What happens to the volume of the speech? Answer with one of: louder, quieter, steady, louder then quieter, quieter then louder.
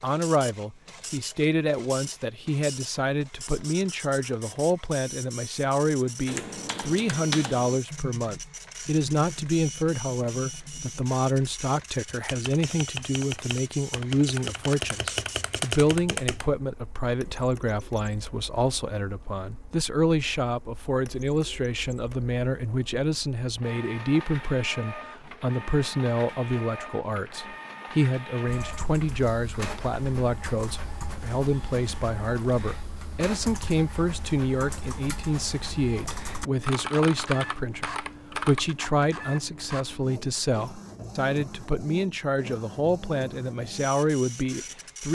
steady.